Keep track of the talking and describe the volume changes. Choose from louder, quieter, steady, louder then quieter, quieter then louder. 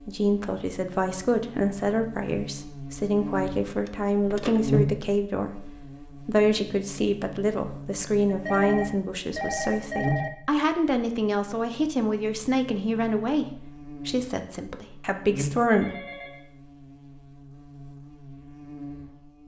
steady.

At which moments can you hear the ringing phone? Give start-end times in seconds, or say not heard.
3.9-4.7, 8.2-10.3, 15.7-16.4.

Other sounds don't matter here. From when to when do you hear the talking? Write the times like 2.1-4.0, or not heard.
0.0-16.1.